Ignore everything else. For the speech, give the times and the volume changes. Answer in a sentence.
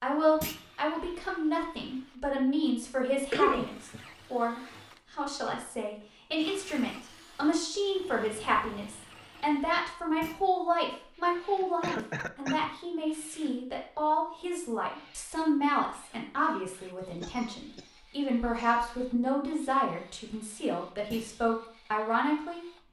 The speech can be heard from 0.0 to 22.6 s, at a steady volume.